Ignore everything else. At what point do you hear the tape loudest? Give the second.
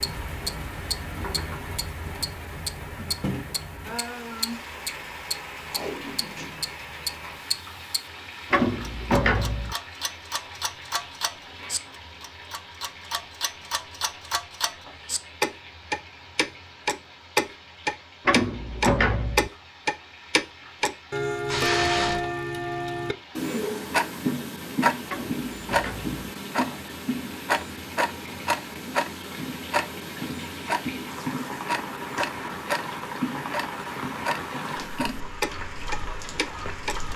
22 s.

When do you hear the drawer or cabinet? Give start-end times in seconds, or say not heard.
8.5-9.8, 18.2-19.5, 25.1-26.1.